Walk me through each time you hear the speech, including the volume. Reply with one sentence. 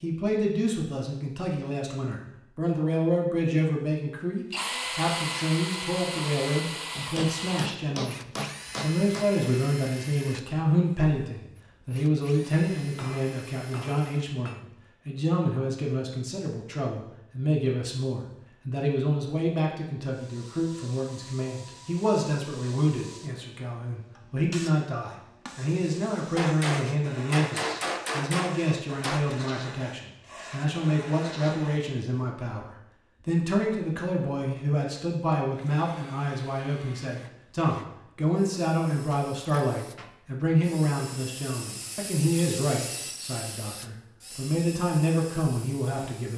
You can hear the speech from 0.0 to 46.3 s, at a steady volume.